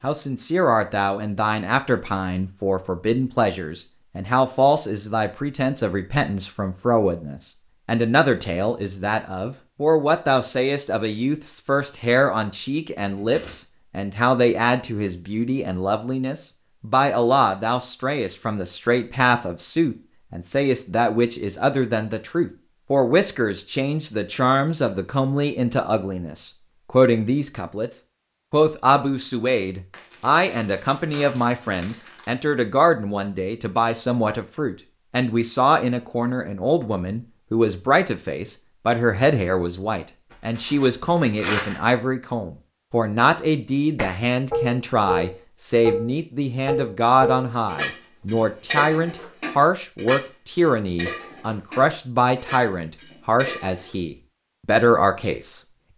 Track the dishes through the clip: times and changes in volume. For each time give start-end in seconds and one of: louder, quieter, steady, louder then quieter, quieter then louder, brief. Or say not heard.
44.0-54.0 quieter.